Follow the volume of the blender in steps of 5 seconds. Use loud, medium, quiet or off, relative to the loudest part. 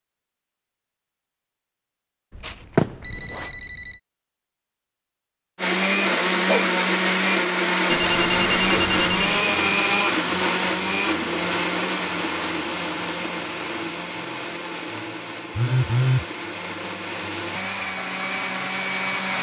off, loud, medium, medium.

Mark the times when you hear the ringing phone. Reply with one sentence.
You can hear the ringing phone from 2.5 to 4.0 s, from 7.8 to 9.3 s and from 15.6 to 16.2 s.